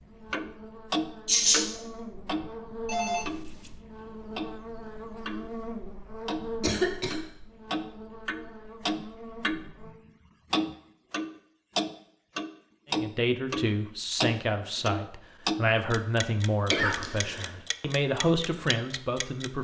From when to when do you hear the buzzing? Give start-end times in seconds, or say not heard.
0.0-9.9.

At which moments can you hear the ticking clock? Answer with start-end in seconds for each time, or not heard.
0.3-5.5, 6.2-19.5.